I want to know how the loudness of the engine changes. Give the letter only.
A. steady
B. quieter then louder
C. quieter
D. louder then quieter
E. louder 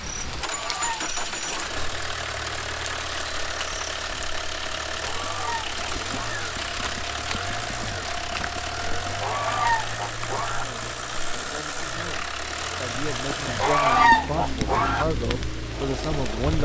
A.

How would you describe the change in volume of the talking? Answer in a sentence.
The loudness of the talking goes up.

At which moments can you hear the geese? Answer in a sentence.
You can hear the geese from 0.3 to 1.7 s, from 5.0 to 6.5 s, from 8.9 to 10.7 s and from 13.3 to 15.1 s.